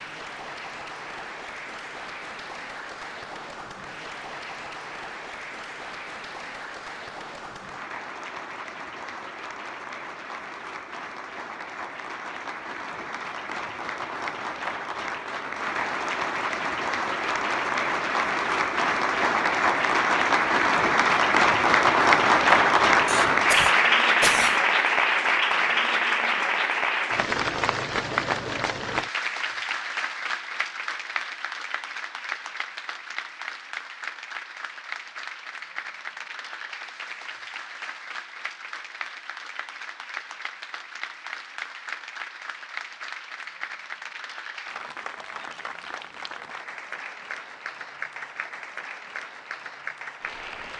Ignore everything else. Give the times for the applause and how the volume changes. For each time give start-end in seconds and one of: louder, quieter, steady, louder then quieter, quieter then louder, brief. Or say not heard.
0.0-50.7 louder then quieter.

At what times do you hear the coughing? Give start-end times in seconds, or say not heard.
23.1-24.6.